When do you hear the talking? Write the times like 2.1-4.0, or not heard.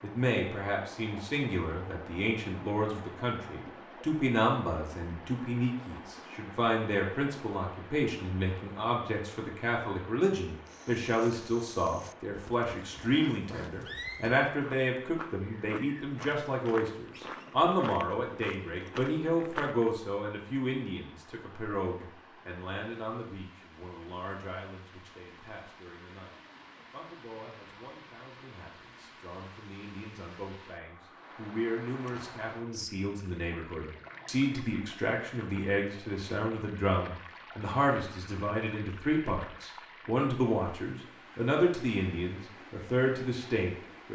0.0-44.1.